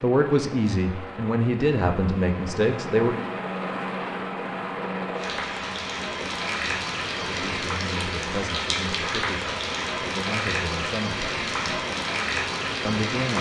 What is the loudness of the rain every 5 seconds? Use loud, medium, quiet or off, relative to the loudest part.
off, loud, loud.